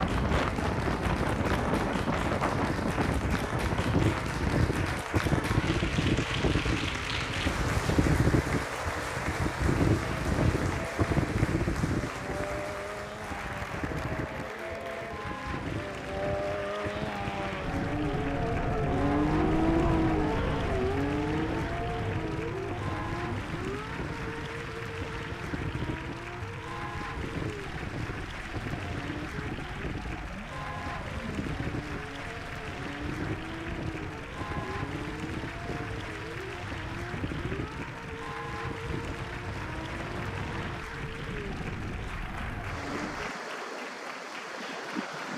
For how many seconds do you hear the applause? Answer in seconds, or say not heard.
45 s.